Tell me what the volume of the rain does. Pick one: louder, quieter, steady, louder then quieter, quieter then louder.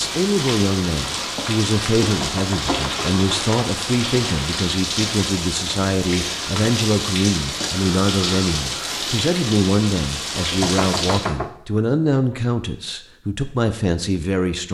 steady.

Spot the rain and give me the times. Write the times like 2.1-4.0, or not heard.
0.0-11.3.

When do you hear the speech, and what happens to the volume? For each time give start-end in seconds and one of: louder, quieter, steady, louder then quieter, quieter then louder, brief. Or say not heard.
0.0-14.6 steady.